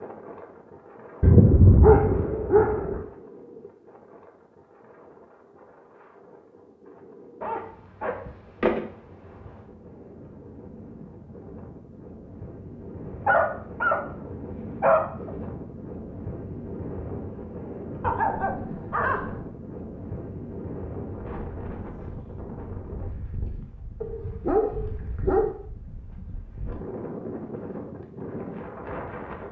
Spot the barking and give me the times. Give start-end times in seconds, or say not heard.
1.2-3.0, 7.4-8.8, 13.1-14.0, 14.8-15.3, 18.0-19.4, 24.0-25.6.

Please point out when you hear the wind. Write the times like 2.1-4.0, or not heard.
0.0-29.4.